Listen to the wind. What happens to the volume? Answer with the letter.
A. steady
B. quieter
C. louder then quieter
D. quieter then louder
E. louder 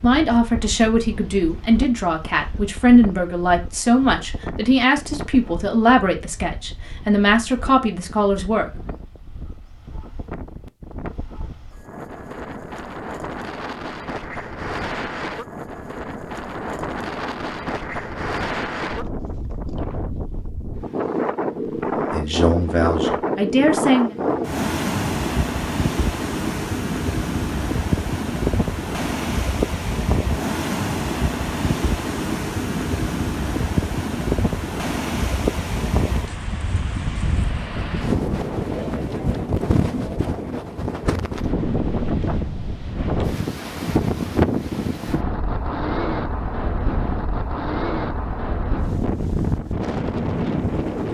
E.